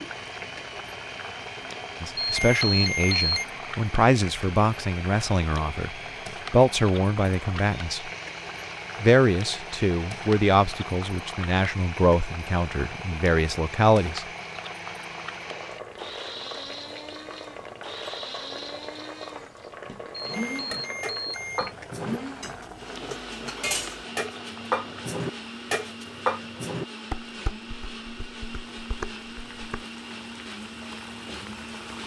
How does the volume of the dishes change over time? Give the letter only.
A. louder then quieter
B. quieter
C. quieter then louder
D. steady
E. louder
A.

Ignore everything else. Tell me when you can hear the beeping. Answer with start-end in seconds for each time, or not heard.
2.2-3.5, 20.3-21.8.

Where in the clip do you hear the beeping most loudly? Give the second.
3 s.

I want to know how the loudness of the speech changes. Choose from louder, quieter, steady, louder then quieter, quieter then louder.
steady.